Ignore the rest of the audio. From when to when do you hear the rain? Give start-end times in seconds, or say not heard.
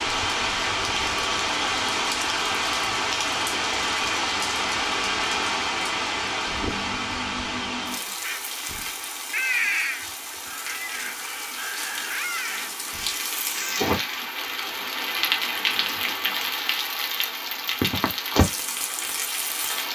0.0-19.9.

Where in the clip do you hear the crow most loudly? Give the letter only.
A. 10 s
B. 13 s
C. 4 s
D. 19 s
A.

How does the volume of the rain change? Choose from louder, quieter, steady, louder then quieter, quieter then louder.
quieter then louder.